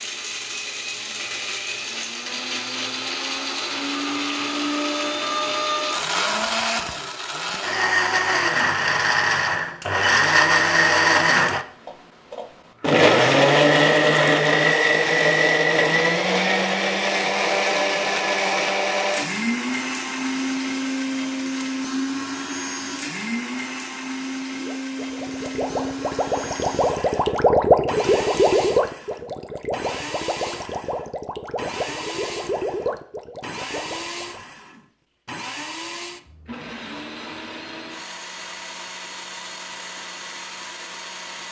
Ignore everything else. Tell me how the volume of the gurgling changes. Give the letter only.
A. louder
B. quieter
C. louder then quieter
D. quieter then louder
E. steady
C.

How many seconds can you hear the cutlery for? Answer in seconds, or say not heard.
not heard.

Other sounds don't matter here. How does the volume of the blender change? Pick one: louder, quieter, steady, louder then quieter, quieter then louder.
louder then quieter.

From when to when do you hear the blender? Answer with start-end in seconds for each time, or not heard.
0.0-41.4.